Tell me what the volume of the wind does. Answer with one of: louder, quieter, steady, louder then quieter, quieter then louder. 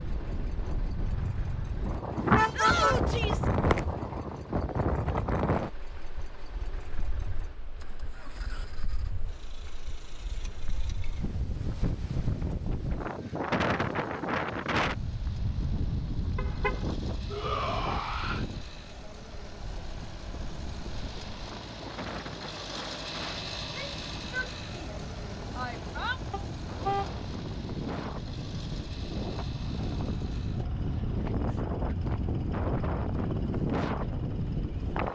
quieter then louder.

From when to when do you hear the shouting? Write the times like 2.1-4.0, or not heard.
2.5-3.5, 17.3-18.4, 23.6-26.2.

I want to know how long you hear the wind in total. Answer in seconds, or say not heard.
35 s.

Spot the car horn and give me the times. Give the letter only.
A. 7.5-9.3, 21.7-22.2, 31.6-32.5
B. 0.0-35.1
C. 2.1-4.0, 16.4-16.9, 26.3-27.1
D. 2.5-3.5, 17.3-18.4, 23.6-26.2
C.